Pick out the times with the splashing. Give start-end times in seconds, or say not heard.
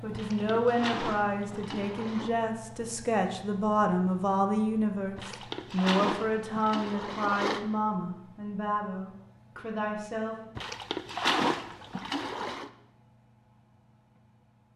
0.1-2.3, 5.2-7.7, 10.6-12.7.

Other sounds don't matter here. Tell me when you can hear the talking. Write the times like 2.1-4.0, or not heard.
0.0-10.5.